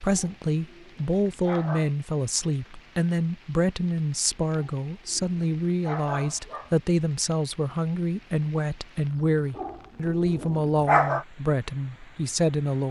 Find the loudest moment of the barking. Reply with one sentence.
The volume of the barking peaks at 11 seconds.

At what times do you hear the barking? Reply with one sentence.
You can hear the barking from 0.1 to 1.9 s, from 4.5 to 6.8 s and from 9.6 to 11.2 s.